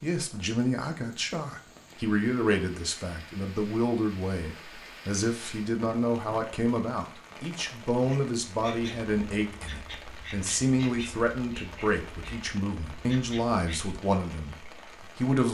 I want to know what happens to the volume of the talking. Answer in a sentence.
The volume of the talking stays about the same.